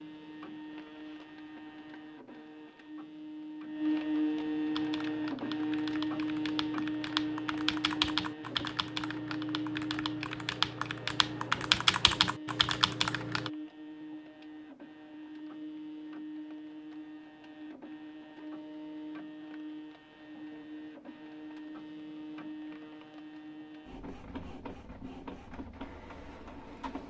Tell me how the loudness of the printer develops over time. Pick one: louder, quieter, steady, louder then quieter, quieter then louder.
quieter.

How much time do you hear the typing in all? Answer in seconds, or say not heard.
9 s.